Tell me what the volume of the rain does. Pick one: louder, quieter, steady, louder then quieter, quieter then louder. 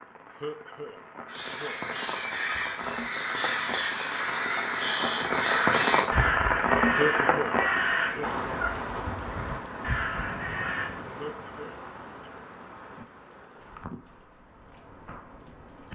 louder then quieter.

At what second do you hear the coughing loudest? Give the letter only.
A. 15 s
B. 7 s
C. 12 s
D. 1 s
B.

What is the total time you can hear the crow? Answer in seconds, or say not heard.
10 s.